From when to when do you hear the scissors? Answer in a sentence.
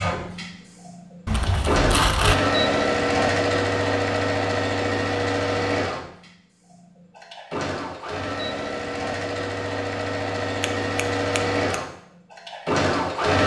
You can hear the scissors from 1.2 to 2.4 s and from 10.6 to 11.8 s.